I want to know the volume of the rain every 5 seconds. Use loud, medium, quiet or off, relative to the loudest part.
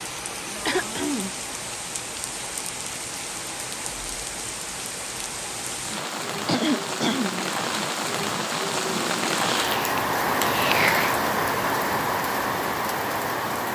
medium, loud, loud.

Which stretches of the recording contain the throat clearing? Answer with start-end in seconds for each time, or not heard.
0.7-1.4, 6.5-7.5, 9.4-11.1.